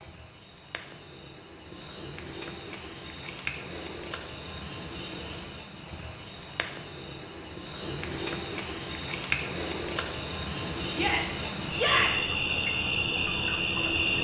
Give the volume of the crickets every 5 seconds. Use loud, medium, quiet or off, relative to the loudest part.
medium, medium, loud.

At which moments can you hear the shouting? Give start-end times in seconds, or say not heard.
10.9-12.3.